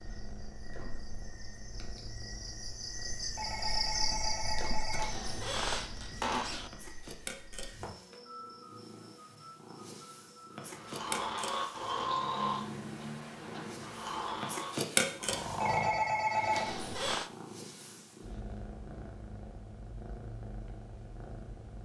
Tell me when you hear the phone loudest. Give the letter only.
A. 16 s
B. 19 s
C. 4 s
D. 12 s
A.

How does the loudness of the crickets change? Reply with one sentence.
The loudness of the crickets goes up, then down.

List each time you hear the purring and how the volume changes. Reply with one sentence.
You can hear the purring from 0.0 to 21.7 s, getting louder then quieter.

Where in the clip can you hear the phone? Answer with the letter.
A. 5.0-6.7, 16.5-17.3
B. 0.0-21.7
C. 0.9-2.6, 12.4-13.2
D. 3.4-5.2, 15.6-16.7
D.